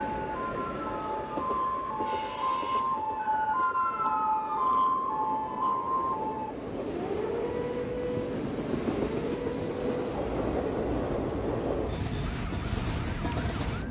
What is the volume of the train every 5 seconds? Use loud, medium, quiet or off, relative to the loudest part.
medium, loud, loud.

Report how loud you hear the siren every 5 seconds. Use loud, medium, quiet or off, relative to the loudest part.
loud, loud, quiet.